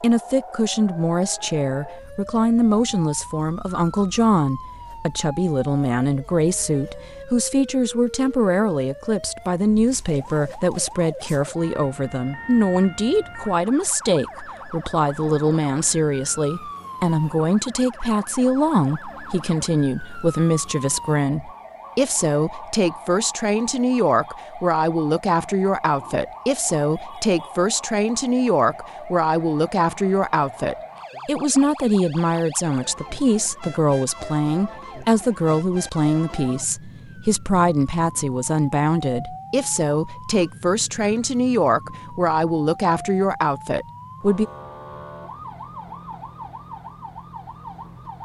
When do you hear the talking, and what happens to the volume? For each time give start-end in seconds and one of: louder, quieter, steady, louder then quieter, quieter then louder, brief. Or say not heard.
0.0-44.5 steady.